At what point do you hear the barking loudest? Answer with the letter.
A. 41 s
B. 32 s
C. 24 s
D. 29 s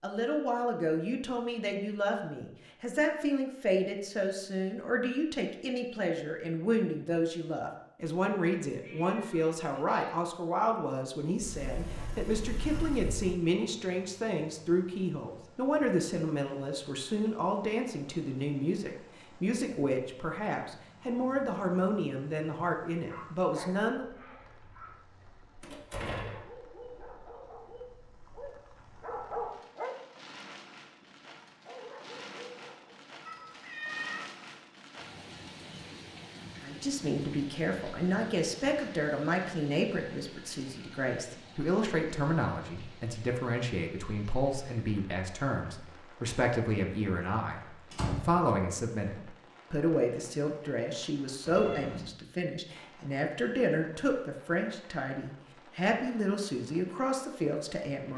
D.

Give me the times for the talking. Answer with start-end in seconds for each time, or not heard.
0.0-24.1, 36.6-58.1.